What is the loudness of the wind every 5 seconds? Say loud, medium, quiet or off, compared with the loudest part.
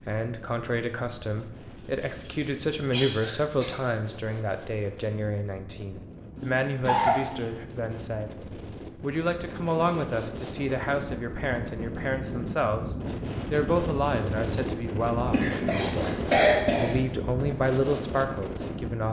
quiet, medium, loud, loud.